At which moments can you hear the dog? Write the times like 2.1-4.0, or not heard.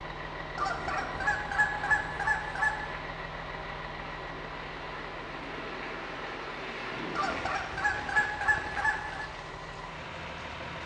not heard.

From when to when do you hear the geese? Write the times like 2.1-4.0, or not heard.
0.6-2.8, 7.2-9.2.